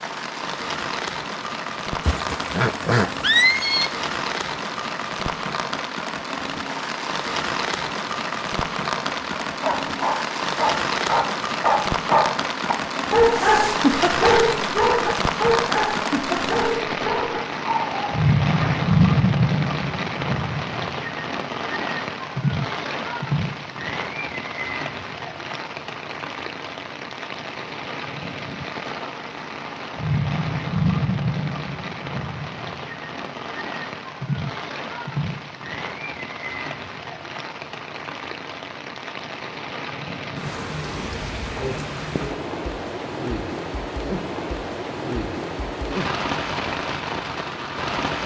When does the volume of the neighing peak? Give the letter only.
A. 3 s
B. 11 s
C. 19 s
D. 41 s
A.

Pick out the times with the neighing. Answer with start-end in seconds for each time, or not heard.
2.0-3.9.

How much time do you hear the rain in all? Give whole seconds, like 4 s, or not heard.
48 s.